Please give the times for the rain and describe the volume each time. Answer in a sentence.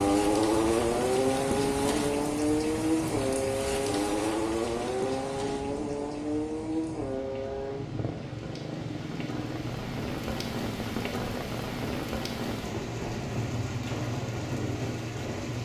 The rain can be heard from 0.0 to 15.6 s, getting quieter then louder.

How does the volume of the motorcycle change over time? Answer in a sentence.
The volume of the motorcycle goes down.